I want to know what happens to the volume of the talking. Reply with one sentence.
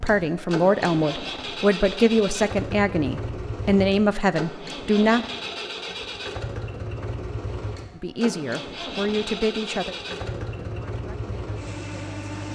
The loudness of the talking goes down.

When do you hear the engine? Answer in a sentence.
You can hear the engine from 0.0 to 12.5 s.